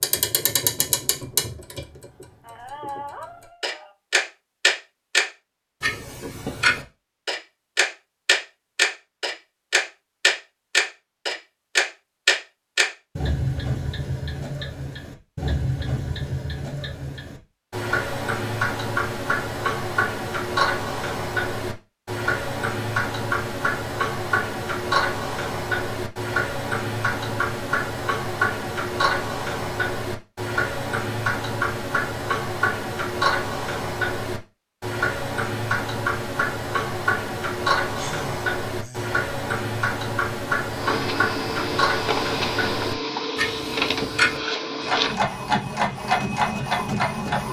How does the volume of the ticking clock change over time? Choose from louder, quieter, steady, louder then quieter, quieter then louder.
steady.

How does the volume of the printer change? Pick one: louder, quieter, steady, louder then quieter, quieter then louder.
steady.